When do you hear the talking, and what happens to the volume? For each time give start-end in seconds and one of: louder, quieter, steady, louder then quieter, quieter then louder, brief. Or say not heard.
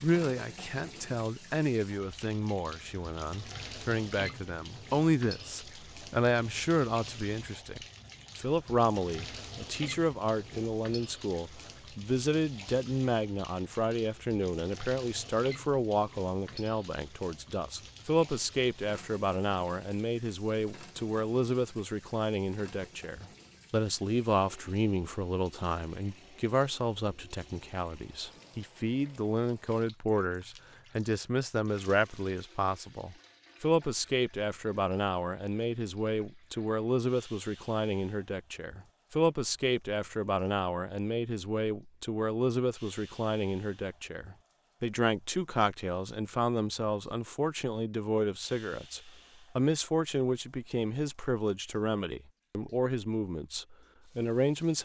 0.0-54.8 steady.